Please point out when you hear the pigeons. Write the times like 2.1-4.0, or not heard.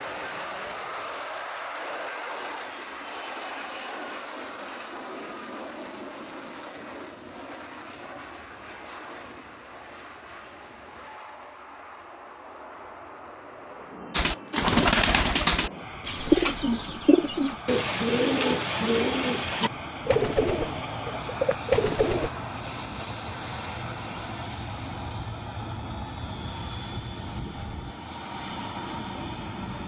14.1-22.3.